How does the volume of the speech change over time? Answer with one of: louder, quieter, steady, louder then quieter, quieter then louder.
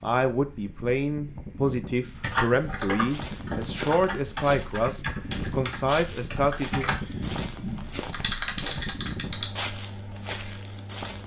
steady.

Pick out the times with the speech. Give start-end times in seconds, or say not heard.
0.0-6.8.